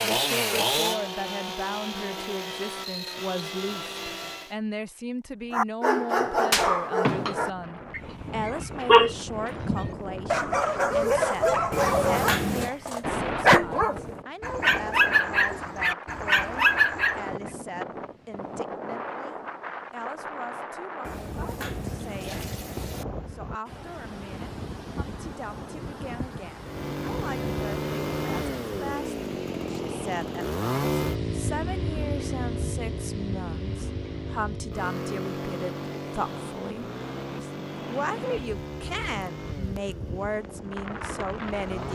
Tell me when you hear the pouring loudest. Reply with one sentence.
The loudest moment of the pouring is at 12 seconds.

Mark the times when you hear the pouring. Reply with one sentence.
You can hear the pouring from 11.7 to 12.7 s and from 21.0 to 23.1 s.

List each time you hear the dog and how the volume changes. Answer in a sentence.
You can hear the dog from 5.5 to 17.2 s, at a steady volume.